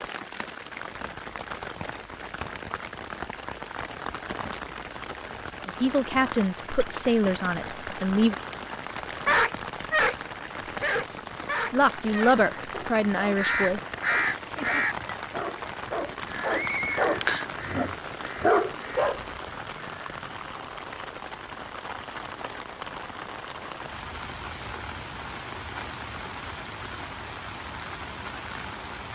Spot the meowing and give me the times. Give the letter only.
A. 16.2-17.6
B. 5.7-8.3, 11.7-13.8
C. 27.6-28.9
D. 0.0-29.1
A.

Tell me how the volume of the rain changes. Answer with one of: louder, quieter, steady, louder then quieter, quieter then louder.
steady.